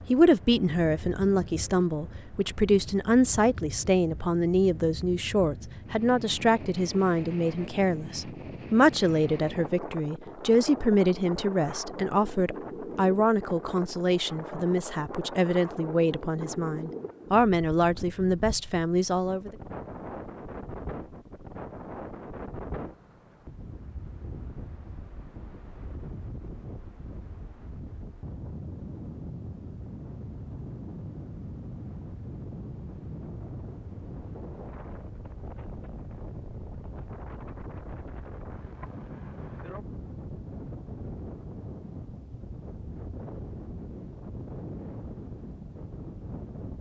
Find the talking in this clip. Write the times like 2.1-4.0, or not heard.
0.1-19.5.